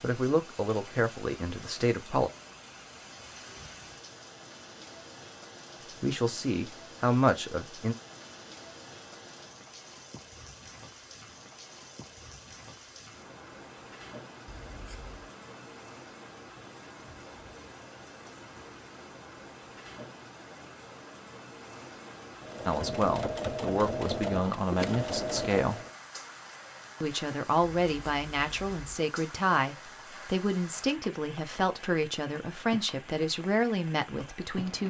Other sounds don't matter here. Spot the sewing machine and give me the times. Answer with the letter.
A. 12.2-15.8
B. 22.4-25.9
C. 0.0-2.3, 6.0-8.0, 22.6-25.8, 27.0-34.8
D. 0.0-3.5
B.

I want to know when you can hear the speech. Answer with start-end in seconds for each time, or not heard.
0.0-2.3, 6.0-8.0, 22.6-25.8, 27.0-34.8.